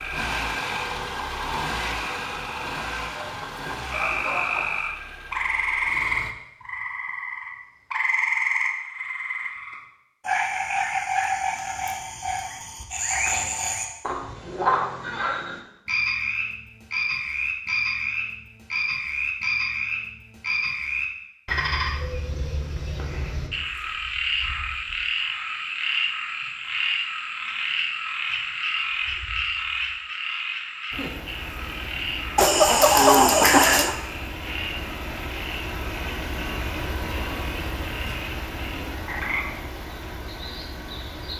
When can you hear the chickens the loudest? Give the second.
33 s.